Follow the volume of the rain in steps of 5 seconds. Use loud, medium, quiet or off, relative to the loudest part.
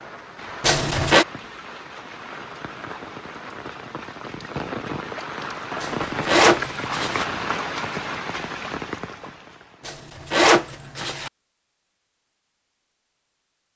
medium, loud, off.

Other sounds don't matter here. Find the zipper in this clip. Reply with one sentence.
The zipper can be heard from 0.6 to 1.2 s, from 5.8 to 7.2 s and from 9.8 to 11.3 s.